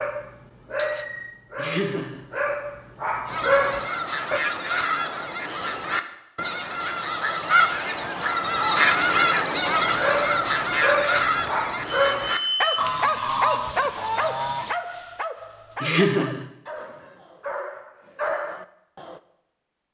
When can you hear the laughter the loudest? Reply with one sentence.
The loudest moment of the laughter is at 16 seconds.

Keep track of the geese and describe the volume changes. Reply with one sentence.
The volume of the geese goes up, then down.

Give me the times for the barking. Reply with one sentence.
You can hear the barking from 0.0 to 4.4 s and from 9.8 to 19.2 s.